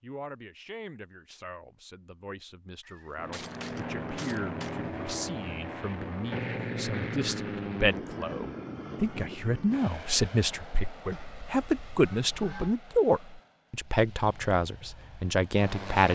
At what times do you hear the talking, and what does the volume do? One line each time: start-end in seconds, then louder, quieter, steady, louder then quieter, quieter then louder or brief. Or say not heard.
0.0-16.1 louder.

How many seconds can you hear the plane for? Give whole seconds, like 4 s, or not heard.
13 s.